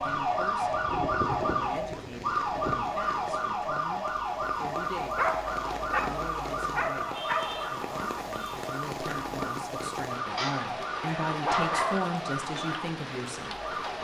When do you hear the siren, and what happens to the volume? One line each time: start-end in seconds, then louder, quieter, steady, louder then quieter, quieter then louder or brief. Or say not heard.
0.0-13.9 quieter.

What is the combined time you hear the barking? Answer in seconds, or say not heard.
6 s.